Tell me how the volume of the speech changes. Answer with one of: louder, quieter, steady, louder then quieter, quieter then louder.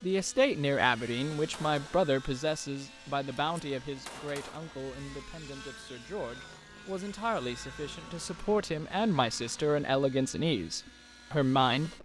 quieter then louder.